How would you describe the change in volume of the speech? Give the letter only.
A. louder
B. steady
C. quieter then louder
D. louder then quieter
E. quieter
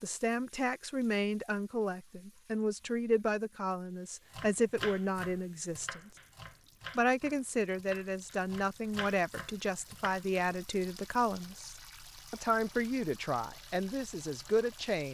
B.